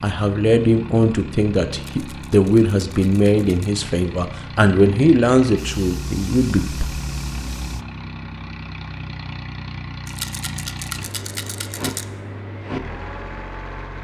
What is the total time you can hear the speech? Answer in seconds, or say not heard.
7 s.